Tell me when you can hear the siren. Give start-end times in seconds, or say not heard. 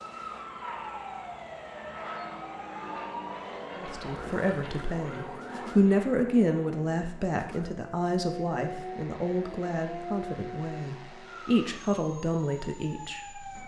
0.0-5.8, 7.3-13.6.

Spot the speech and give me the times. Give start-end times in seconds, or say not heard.
3.8-13.4.